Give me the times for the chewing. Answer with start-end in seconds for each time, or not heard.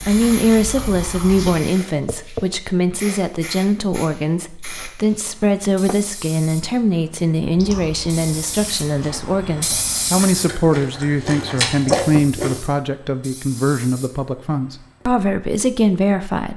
0.0-1.6, 7.5-12.6.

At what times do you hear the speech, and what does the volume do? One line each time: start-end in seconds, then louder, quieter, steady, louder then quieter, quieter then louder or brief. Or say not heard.
0.1-16.5 steady.